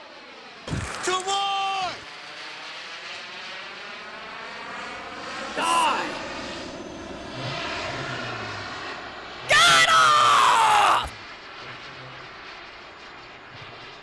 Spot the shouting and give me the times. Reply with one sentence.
The shouting can be heard from 0.7 to 1.9 s, from 5.5 to 6.2 s and from 9.4 to 11.1 s.